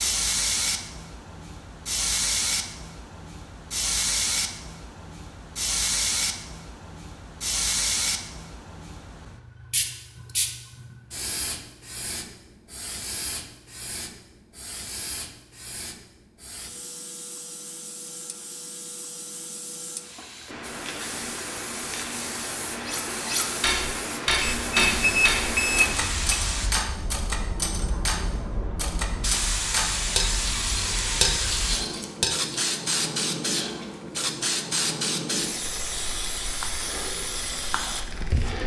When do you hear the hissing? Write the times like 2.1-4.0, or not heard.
0.0-38.6.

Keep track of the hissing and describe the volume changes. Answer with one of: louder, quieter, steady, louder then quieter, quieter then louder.
quieter then louder.